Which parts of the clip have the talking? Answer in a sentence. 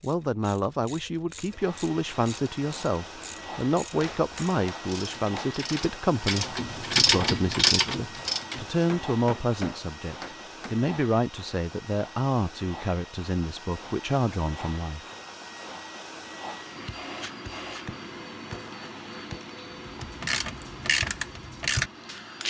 You can hear the talking from 0.0 to 15.0 s.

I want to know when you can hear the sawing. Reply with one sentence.
You can't hear the sawing here.